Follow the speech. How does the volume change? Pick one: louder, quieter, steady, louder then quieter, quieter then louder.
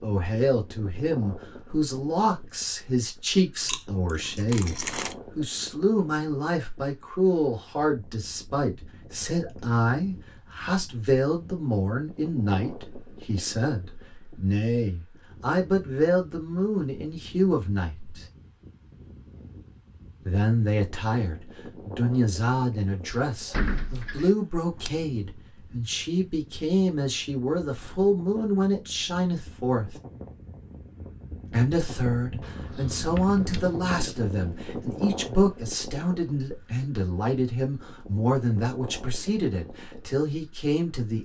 steady.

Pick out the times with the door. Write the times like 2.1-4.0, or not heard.
23.1-24.3.